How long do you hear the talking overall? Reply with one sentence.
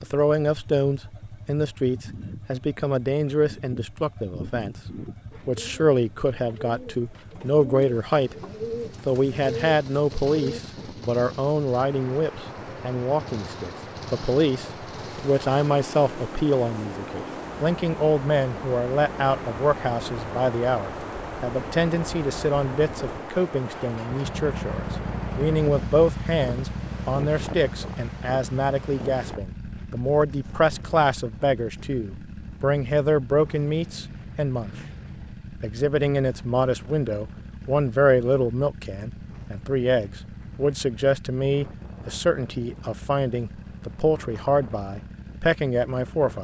The talking can be heard for 44 seconds in total.